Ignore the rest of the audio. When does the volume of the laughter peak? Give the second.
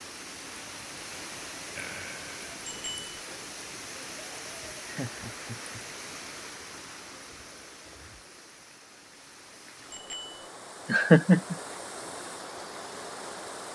11 s.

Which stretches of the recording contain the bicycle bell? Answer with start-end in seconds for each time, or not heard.
2.6-3.1, 9.9-10.4.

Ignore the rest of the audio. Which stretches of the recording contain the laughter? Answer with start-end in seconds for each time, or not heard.
1.8-2.6, 4.8-5.8, 10.8-11.6.